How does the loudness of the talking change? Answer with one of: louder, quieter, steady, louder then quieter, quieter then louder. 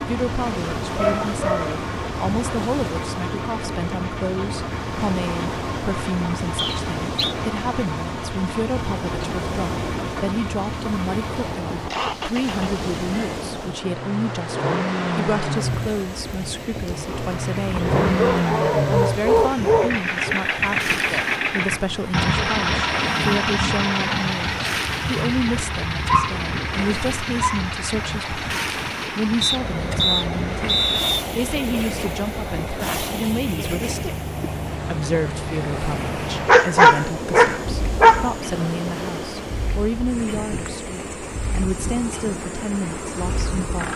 steady.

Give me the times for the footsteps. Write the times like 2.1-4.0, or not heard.
not heard.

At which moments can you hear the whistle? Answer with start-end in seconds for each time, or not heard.
6.5-7.3, 29.4-31.1.